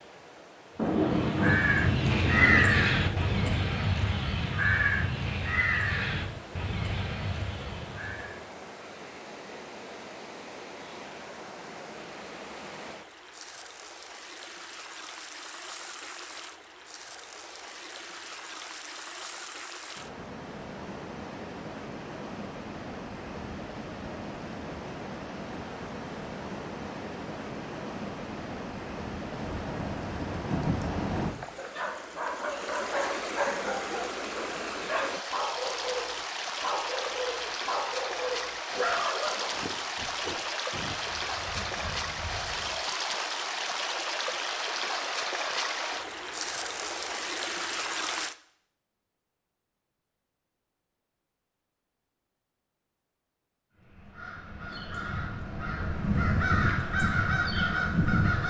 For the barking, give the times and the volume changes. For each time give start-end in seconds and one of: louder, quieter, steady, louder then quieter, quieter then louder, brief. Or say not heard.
31.6-41.0 steady.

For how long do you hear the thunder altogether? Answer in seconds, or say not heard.
7 s.